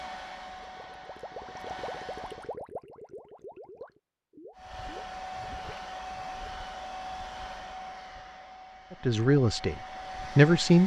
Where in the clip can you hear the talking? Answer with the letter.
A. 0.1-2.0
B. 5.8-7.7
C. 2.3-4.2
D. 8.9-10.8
D.